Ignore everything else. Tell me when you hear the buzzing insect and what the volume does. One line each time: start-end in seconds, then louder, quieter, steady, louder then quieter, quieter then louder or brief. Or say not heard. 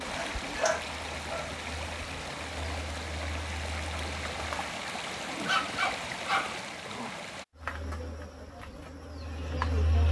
0.1-4.8 steady
7.6-10.0 brief.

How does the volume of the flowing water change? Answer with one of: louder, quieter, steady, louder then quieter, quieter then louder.
steady.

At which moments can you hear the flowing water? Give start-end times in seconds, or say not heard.
0.0-7.5.